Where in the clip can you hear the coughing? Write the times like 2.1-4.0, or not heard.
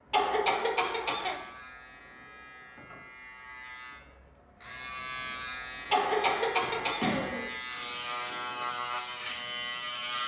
0.1-1.4, 5.9-7.5.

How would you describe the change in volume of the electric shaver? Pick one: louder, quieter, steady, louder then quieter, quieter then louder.
louder.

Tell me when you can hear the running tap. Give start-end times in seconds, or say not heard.
not heard.